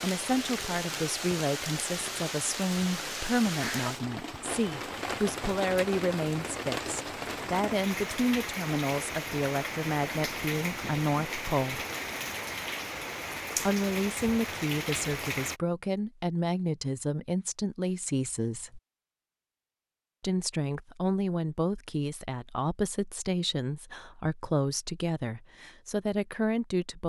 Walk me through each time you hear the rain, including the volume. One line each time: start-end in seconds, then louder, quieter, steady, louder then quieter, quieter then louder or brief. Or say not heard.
0.0-15.6 steady.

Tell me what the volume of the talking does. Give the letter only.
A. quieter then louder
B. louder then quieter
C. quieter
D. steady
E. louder
D.